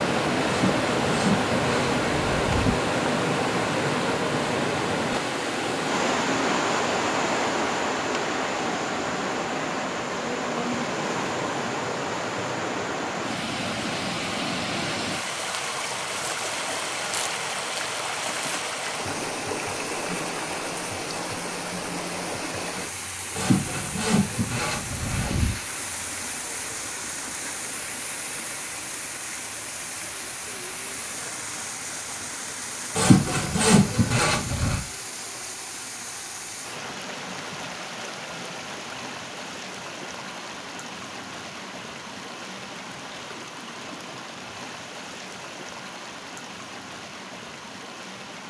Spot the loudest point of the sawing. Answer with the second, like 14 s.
33 s.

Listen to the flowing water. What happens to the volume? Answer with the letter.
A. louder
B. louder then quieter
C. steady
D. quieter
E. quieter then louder
D.